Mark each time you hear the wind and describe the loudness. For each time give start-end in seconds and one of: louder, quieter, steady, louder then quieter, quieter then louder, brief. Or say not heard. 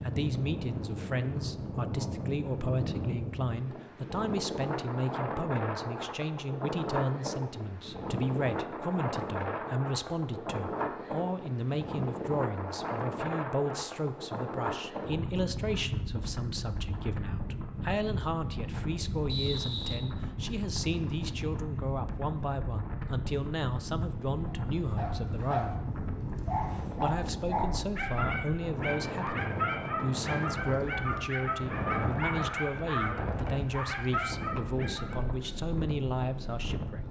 0.0-37.0 steady.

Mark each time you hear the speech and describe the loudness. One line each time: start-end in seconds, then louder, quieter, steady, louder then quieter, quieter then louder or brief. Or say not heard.
0.0-25.8 steady
26.9-37.0 steady.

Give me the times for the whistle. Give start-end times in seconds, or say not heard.
19.2-20.0.